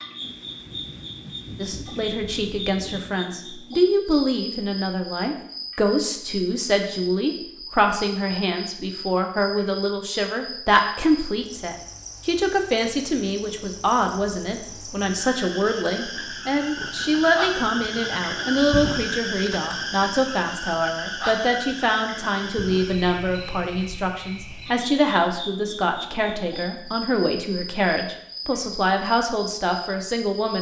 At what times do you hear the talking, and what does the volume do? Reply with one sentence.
The talking can be heard from 1.6 to 30.5 s, at a steady volume.